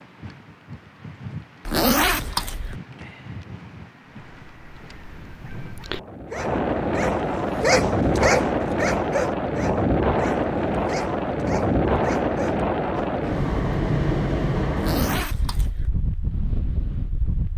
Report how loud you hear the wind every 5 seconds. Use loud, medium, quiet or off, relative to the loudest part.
quiet, loud, loud, medium.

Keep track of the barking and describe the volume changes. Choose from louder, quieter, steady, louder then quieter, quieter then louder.
louder then quieter.